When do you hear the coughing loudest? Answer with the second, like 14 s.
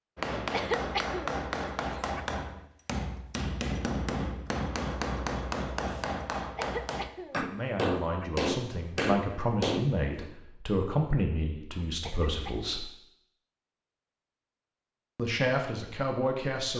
1 s.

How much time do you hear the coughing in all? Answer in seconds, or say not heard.
4 s.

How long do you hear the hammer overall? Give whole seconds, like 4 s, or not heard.
10 s.